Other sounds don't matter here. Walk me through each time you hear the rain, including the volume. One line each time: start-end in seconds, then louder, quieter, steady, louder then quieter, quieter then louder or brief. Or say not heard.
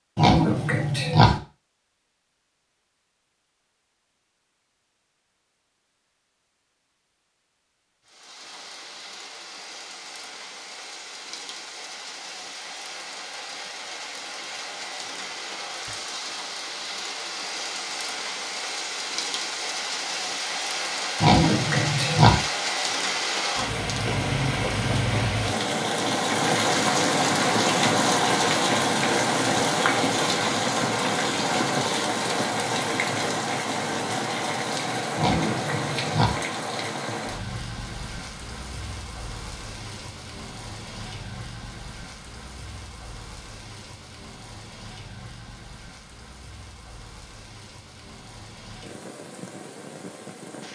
8.1-50.6 louder then quieter.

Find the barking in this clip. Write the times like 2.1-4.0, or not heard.
not heard.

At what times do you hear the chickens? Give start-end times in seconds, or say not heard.
not heard.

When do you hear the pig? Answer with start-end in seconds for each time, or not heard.
0.1-1.4, 21.2-22.4, 35.1-36.4.